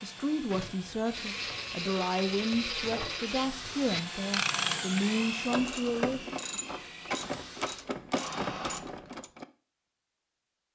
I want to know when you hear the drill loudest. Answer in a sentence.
The volume of the drill peaks at 5 seconds.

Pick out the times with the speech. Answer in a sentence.
The speech can be heard from 0.0 to 6.3 s.